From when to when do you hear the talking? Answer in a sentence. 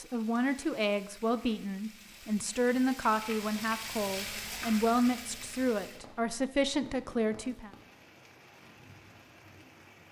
The talking can be heard from 0.0 to 7.7 s.